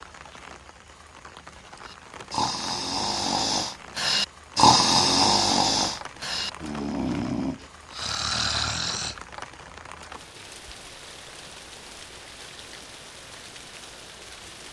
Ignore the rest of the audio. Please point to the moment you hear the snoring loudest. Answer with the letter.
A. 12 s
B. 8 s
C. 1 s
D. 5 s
D.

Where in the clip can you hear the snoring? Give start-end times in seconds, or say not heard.
1.9-9.2.